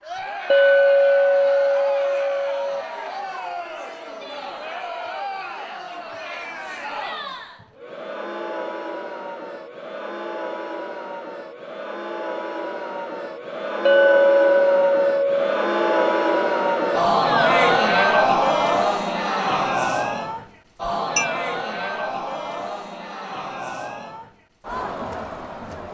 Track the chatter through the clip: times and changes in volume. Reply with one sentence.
You can hear the chatter from 0.0 to 25.8 s, getting louder then quieter.